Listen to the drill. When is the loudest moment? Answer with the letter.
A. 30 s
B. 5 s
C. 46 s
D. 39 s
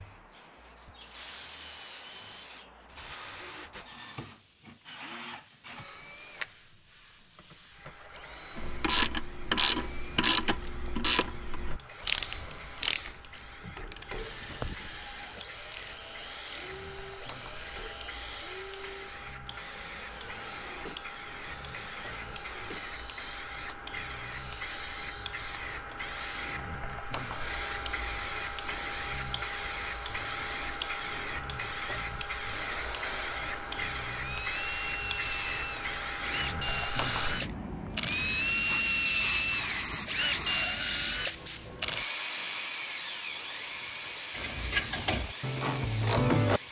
D.